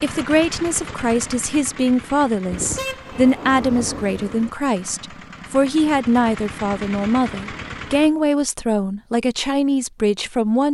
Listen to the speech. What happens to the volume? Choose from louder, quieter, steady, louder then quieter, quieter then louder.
steady.